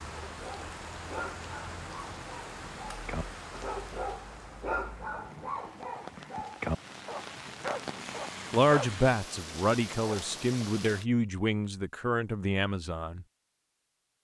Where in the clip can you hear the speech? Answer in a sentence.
The speech can be heard from 8.5 to 13.2 s.